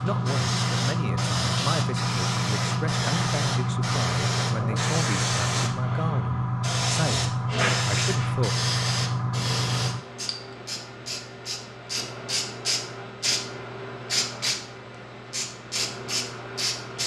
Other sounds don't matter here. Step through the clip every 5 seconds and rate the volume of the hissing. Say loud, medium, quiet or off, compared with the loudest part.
loud, loud, medium, medium.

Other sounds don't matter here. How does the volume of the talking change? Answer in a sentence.
The volume of the talking stays about the same.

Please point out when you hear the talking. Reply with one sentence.
You can hear the talking from 0.0 to 8.6 s.